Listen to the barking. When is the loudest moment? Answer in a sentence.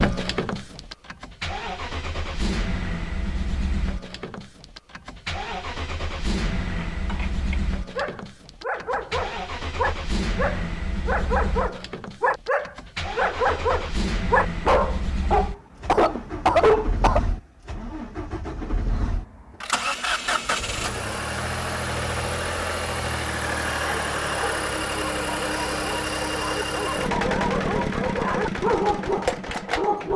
The loudest moment of the barking is at 17 seconds.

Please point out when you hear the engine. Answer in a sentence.
The engine can be heard from 0.0 to 30.1 s.